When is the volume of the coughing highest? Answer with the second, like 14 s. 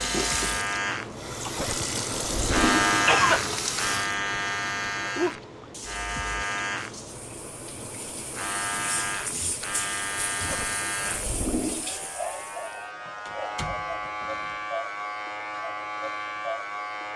3 s.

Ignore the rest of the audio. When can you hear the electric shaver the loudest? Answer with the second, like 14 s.
3 s.